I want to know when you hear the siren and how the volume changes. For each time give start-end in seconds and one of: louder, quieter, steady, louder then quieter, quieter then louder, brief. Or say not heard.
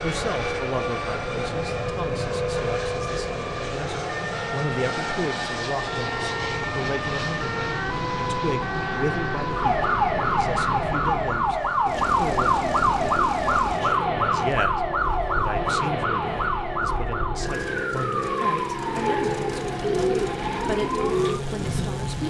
0.0-22.2 louder then quieter.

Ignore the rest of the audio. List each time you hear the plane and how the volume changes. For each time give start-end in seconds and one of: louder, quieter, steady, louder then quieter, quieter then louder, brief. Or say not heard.
0.0-22.2 steady.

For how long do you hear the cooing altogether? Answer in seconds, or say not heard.
3 s.